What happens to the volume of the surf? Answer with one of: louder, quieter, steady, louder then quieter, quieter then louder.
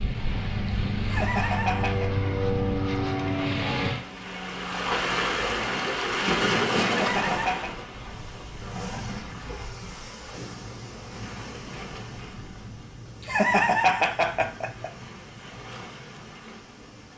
louder then quieter.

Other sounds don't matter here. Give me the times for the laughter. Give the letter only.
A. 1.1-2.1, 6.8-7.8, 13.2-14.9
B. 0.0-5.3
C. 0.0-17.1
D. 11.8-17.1
A.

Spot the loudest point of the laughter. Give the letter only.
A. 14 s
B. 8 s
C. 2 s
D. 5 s
A.